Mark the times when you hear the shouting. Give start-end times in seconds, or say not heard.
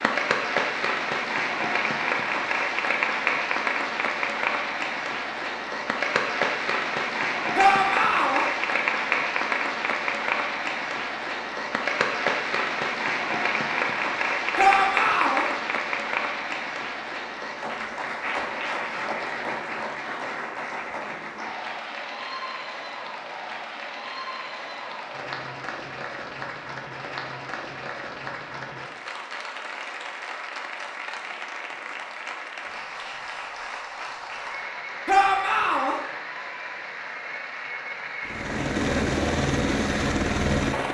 7.5-8.4, 14.6-15.4, 35.0-36.0.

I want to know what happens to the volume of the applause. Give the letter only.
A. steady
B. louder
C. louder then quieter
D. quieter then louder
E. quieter
E.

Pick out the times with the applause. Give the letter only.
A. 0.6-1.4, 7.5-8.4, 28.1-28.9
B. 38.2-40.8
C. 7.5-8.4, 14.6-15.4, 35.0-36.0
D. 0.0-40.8
D.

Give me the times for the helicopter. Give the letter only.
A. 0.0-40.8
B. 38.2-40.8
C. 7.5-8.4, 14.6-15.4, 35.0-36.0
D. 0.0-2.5
B.